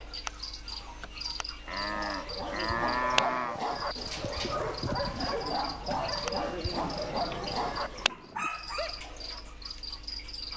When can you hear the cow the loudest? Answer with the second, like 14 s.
3 s.